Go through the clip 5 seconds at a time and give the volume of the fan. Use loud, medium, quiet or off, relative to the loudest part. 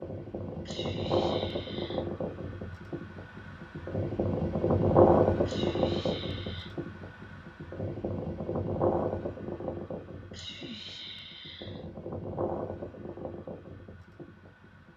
loud, loud, quiet.